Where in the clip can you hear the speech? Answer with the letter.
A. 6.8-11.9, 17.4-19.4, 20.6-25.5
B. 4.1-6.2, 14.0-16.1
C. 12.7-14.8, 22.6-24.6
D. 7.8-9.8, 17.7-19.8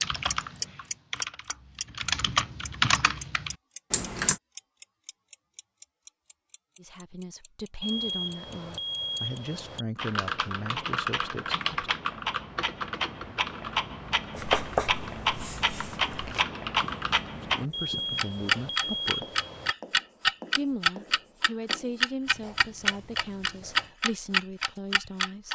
A.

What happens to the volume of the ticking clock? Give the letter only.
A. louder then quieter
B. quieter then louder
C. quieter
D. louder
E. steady
B.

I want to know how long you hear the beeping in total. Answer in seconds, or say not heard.
4 s.